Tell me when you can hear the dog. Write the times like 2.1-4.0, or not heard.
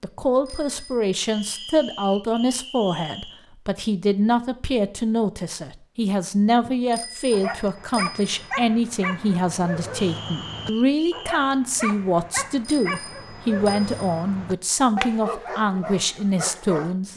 7.3-16.9.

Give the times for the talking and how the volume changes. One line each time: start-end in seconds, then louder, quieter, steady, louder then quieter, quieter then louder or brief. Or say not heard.
0.0-17.1 steady.